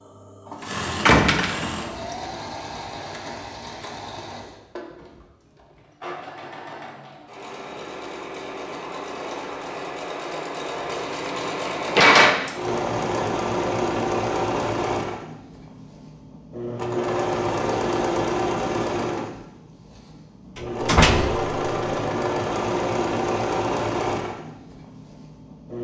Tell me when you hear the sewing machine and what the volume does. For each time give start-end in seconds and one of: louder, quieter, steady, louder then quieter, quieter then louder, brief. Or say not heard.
0.0-25.7 louder.